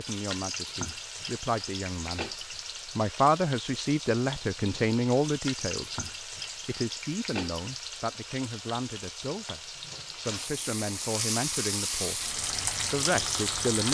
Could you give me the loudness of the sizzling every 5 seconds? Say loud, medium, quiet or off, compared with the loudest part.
medium, medium, loud.